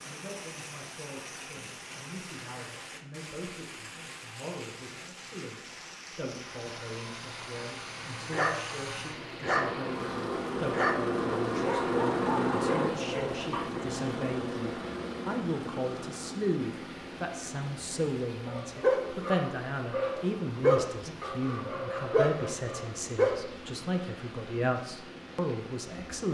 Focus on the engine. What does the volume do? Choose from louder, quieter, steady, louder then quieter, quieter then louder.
louder then quieter.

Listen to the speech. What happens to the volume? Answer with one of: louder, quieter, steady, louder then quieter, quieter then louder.
louder.